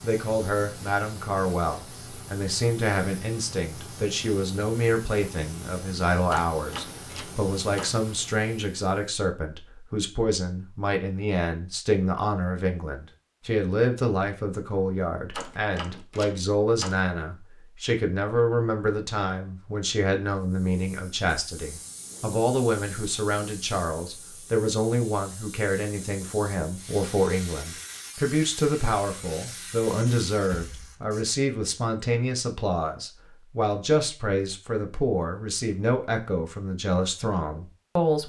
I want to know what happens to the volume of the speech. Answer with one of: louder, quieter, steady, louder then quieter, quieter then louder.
steady.